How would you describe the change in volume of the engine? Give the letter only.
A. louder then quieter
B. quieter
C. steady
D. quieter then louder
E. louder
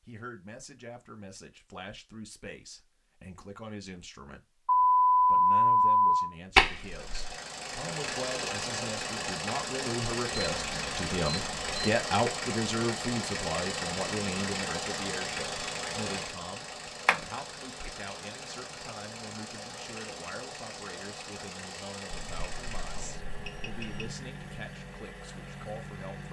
B.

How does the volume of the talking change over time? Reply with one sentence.
The volume of the talking goes up, then down.